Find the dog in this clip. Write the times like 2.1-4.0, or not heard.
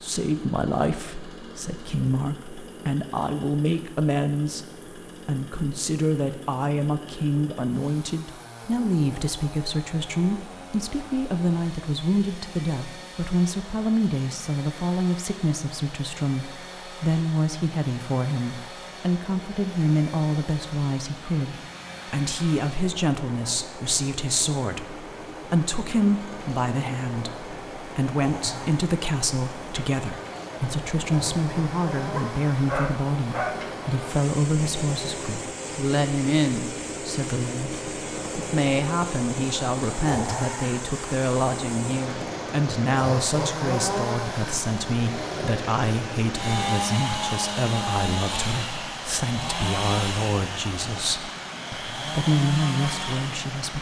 32.1-33.8.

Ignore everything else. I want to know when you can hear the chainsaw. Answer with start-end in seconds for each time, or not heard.
0.0-53.5.